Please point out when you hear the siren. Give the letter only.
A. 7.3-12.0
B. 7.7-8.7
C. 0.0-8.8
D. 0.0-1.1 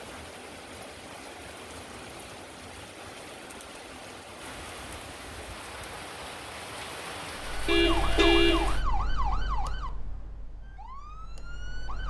A.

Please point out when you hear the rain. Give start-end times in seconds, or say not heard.
0.0-8.8.